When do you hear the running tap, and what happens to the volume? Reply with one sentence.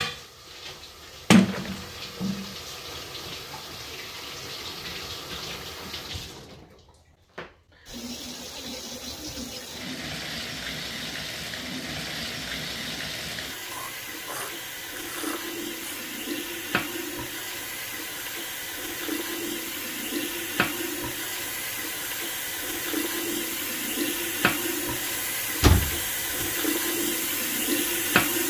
You can hear the running tap from 0.0 to 28.4 s, getting louder.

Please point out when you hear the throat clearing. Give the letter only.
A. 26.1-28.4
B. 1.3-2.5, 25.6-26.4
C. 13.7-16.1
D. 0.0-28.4
C.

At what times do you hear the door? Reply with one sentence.
The door can be heard from 1.3 to 2.5 s and from 25.6 to 26.4 s.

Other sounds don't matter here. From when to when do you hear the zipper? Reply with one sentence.
The zipper can't be heard in this clip.